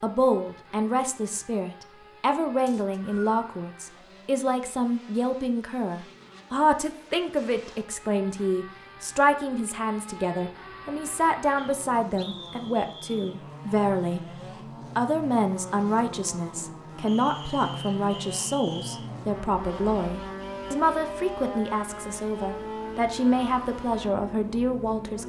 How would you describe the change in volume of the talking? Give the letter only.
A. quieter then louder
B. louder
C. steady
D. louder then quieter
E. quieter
C.